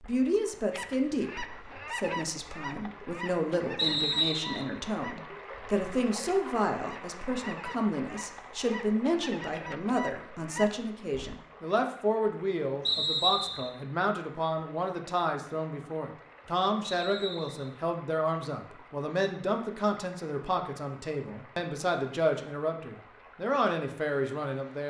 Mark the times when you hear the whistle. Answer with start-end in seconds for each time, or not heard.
3.8-4.7, 12.8-13.7, 16.8-17.7.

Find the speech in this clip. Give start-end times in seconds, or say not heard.
0.0-24.8.